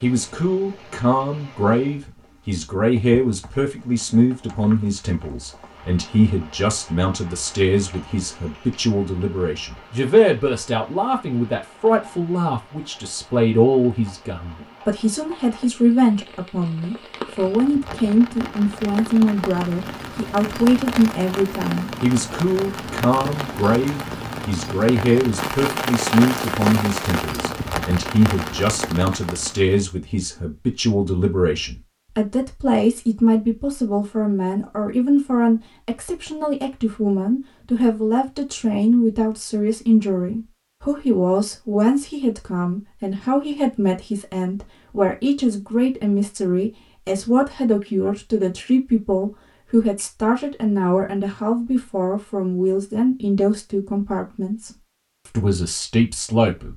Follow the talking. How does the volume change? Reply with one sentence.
The volume of the talking stays about the same.